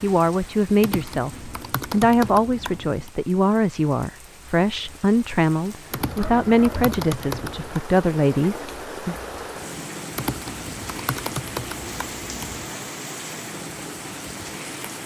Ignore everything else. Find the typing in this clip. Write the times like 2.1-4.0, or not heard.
0.8-3.1, 5.9-7.8, 10.2-12.7.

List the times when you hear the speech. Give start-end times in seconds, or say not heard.
0.0-9.2.